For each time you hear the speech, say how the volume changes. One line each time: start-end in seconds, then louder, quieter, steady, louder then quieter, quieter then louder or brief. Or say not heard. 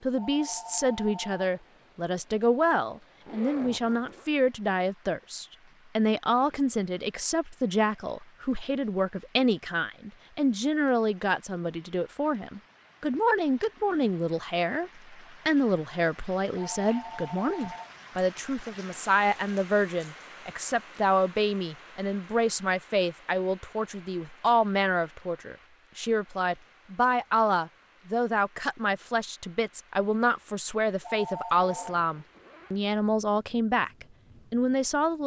0.0-35.2 steady.